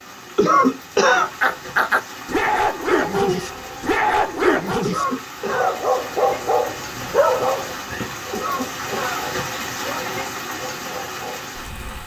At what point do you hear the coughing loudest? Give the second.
1 s.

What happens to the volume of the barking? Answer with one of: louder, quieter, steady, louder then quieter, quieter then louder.
quieter.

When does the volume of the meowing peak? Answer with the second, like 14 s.
3 s.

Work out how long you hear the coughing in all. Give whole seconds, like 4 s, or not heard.
3 s.